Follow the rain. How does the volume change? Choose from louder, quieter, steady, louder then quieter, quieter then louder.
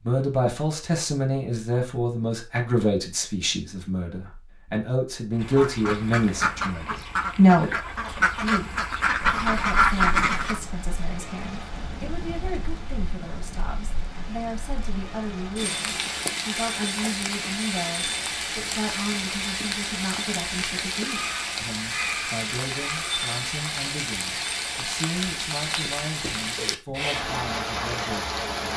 louder.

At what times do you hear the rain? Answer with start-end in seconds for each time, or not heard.
9.2-28.7.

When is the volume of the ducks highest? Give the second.
10 s.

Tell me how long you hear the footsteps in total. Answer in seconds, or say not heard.
not heard.